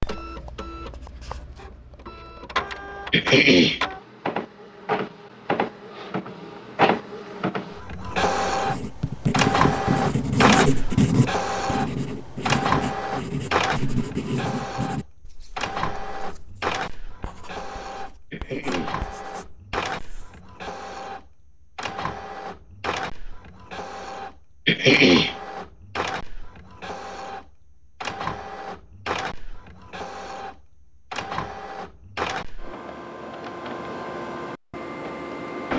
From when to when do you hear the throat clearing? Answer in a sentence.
You can hear the throat clearing from 3.1 to 3.8 s, from 18.3 to 19.0 s and from 24.6 to 25.4 s.